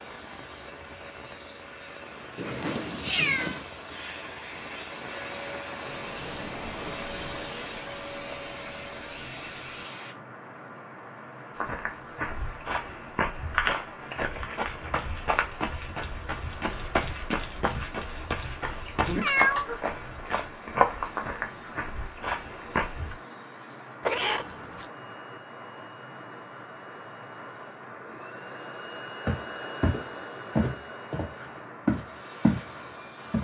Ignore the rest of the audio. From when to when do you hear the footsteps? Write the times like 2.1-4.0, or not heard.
11.6-23.1, 29.2-32.7.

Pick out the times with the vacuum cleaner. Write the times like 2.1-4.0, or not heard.
0.0-10.2, 15.4-33.3.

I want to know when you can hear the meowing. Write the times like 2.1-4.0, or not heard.
2.4-3.6, 19.2-19.8, 24.1-24.9.